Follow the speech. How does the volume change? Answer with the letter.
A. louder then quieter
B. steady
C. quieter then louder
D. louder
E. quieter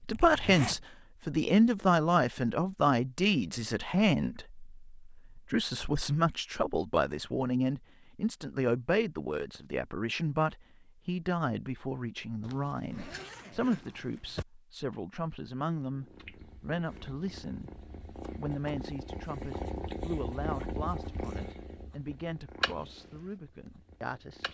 E.